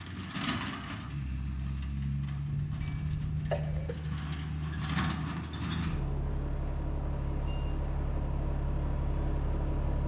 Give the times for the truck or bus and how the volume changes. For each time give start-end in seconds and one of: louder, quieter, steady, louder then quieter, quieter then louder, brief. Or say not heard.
0.0-10.0 steady.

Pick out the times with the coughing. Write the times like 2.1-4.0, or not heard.
2.5-4.0.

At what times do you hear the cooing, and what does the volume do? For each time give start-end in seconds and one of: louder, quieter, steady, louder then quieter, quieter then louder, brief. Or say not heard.
not heard.